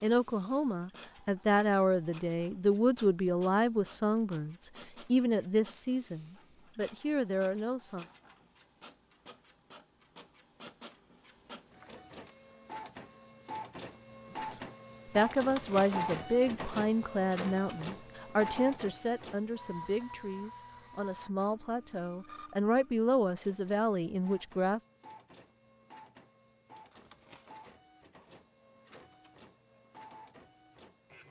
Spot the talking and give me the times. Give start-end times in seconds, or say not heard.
0.0-8.1, 14.5-24.8.